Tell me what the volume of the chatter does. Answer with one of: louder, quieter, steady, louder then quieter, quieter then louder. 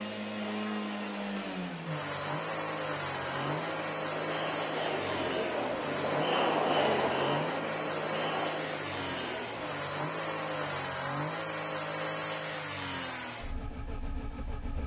louder then quieter.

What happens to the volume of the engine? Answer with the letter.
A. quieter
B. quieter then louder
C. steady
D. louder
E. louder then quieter
C.